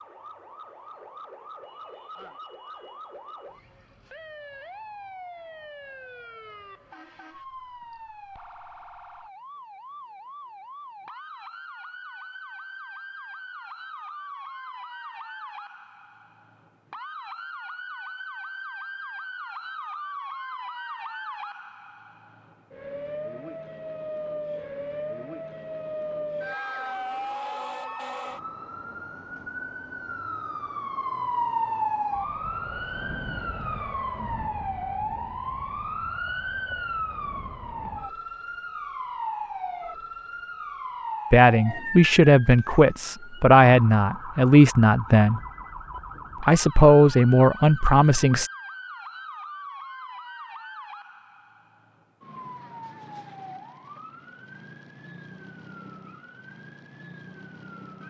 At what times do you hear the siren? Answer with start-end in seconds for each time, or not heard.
0.0-58.0.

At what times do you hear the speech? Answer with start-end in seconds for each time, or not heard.
41.3-45.4, 46.4-48.5.